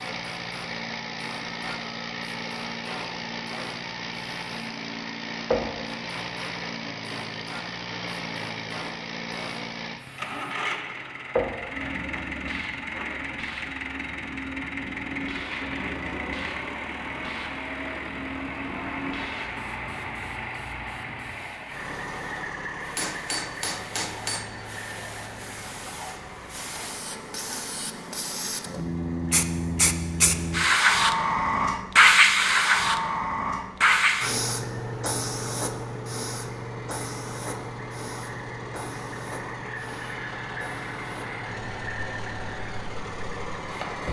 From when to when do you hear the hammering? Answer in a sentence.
The hammering can be heard from 22.9 to 24.4 s.